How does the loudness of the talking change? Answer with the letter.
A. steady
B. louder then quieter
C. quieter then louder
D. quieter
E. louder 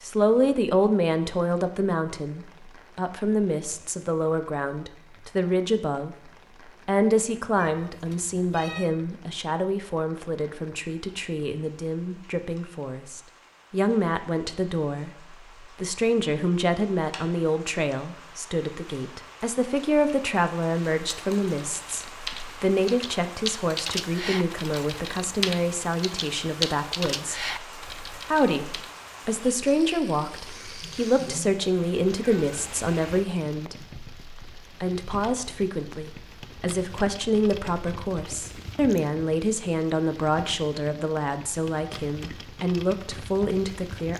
A.